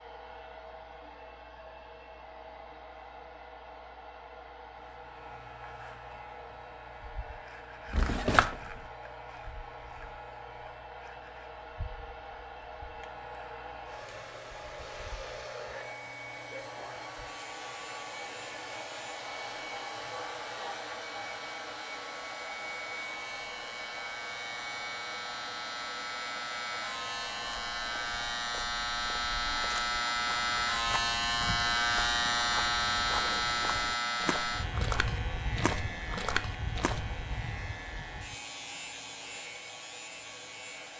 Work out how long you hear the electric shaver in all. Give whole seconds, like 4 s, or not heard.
36 s.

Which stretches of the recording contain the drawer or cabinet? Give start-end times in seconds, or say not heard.
7.9-8.8.